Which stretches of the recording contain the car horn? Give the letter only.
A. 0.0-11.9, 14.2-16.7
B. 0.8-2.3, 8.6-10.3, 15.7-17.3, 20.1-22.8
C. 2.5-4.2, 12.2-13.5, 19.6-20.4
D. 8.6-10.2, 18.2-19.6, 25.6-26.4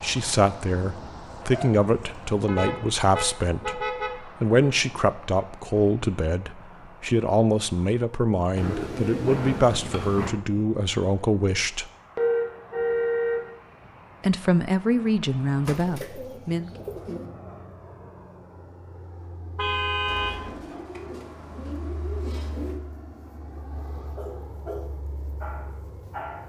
C.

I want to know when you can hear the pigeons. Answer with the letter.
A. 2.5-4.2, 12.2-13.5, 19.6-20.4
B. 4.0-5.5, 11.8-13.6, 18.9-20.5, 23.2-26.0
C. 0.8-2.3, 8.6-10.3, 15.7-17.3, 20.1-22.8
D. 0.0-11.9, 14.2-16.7
C.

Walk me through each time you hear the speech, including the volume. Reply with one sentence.
You can hear the speech from 0.0 to 11.9 s, at a steady volume; and briefly from 14.2 to 16.7 s.